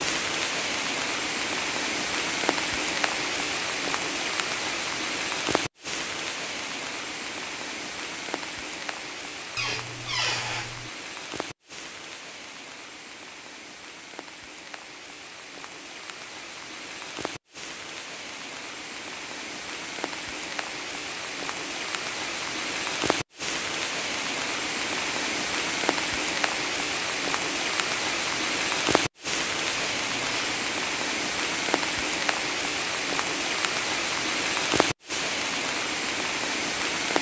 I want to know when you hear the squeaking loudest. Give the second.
10 s.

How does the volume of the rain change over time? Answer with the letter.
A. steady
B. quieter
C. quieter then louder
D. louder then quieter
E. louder
C.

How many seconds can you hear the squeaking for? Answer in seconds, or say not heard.
2 s.